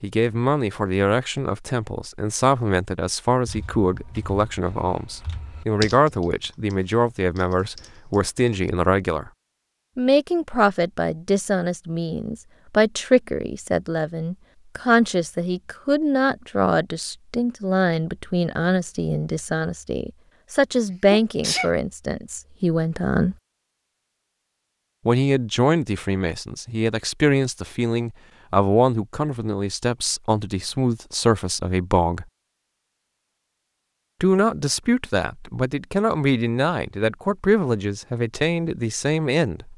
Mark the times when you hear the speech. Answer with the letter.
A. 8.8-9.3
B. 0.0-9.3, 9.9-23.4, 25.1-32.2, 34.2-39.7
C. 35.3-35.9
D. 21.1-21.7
B.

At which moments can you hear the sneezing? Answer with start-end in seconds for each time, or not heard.
21.1-21.7.